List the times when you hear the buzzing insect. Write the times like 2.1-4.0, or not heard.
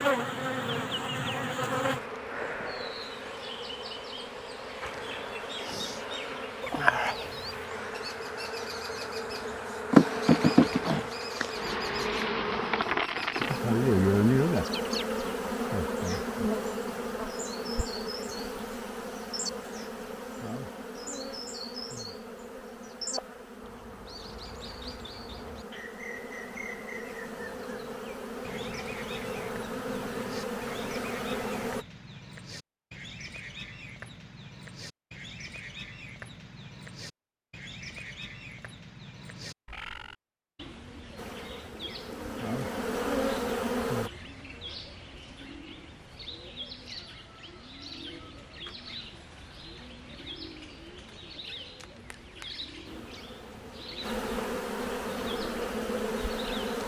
0.0-31.9, 41.1-44.1, 52.9-56.8.